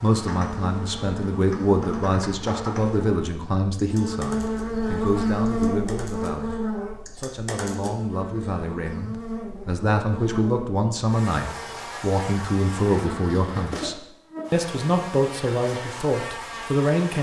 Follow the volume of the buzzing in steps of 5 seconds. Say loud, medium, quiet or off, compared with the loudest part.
loud, loud, medium, medium.